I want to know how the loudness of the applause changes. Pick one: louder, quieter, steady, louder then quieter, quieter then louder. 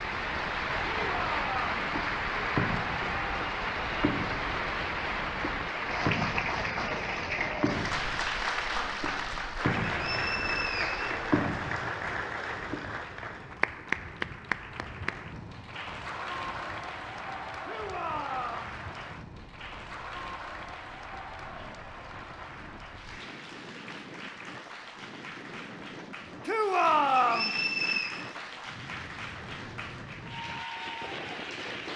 quieter.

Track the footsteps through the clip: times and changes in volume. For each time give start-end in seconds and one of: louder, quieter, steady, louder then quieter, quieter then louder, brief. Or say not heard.
not heard.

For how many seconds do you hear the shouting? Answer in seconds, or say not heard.
3 s.